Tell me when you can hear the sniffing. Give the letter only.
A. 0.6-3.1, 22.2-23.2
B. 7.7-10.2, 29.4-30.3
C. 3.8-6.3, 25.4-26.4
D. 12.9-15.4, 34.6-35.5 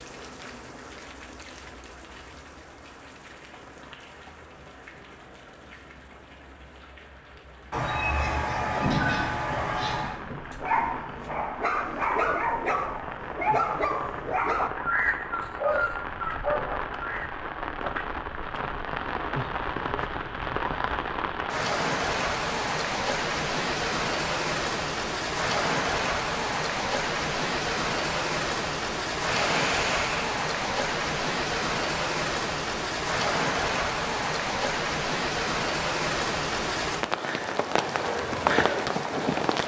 B.